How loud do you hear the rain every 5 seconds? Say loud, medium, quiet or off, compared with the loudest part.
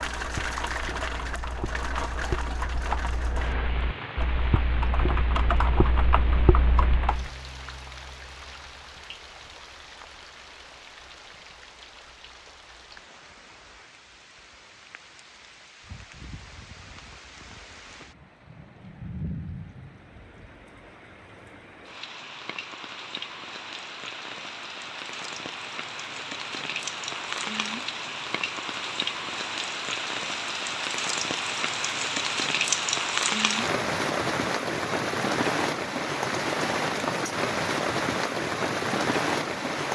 medium, quiet, quiet, quiet, quiet, medium, loud, loud.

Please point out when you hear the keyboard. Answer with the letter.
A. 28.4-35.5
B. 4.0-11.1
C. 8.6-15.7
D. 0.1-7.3
D.